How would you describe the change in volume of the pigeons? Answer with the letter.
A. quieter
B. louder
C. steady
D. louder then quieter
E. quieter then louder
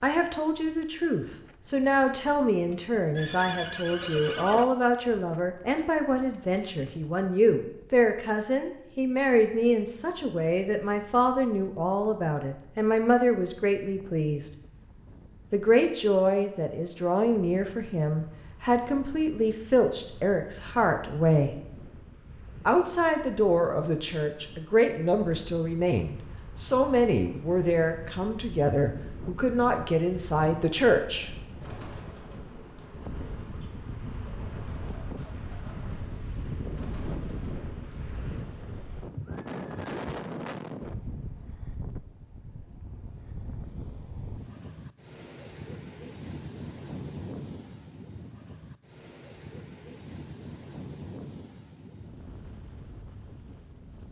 C.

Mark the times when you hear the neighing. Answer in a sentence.
The neighing can be heard from 3.1 to 4.7 s and from 39.0 to 39.9 s.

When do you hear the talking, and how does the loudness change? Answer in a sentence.
The talking can be heard from 0.0 to 14.5 s, at a steady volume; from 15.5 to 21.6 s, at a steady volume; and from 22.6 to 31.3 s, at a steady volume.